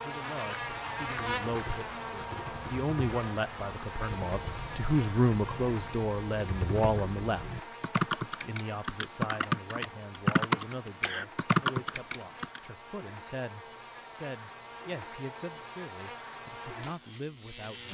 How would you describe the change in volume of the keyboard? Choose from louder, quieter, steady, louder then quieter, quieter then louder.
louder.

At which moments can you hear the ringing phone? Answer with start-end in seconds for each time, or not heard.
not heard.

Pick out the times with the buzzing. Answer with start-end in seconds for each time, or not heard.
0.0-17.8.